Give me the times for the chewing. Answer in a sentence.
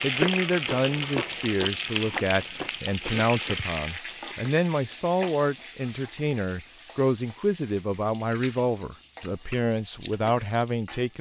The chewing can be heard from 0.0 to 4.3 s and from 8.2 to 10.8 s.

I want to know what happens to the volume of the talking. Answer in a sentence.
The volume of the talking stays about the same.